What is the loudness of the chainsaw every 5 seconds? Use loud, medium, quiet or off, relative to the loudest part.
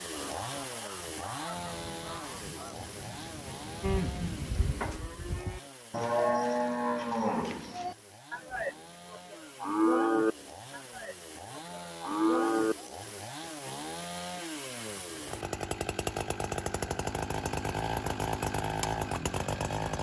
medium, quiet, medium, loud.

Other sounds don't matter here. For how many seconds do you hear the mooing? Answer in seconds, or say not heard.
9 s.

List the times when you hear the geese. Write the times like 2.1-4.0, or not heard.
0.1-2.9.